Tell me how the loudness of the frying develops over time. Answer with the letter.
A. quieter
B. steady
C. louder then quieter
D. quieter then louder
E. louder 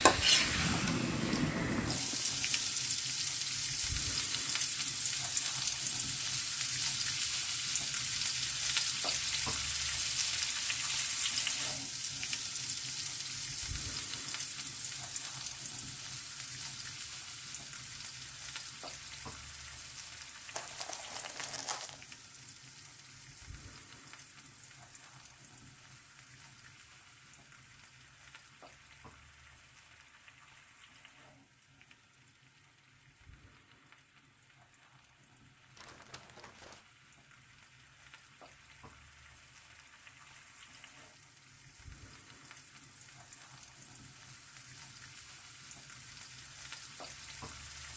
D.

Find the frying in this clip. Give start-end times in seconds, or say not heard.
0.0-47.9.